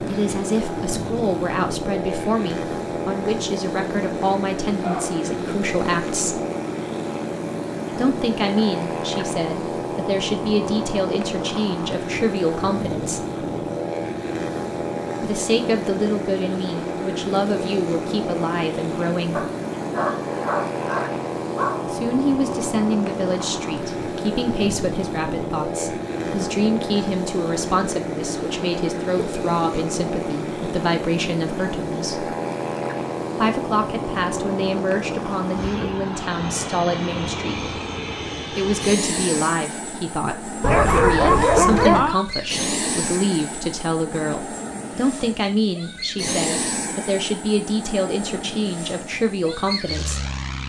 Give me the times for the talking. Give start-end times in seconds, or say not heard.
0.1-6.4, 7.9-13.2, 15.2-19.4, 21.9-32.4, 33.4-37.7, 38.5-50.2.